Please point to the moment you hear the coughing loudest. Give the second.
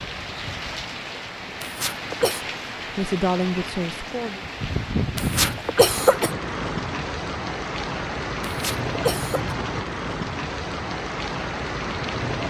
6 s.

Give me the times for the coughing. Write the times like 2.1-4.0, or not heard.
1.6-2.4, 5.2-6.3, 8.4-9.6.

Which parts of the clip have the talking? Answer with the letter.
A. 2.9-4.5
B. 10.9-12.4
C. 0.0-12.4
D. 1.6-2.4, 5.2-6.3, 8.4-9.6
A.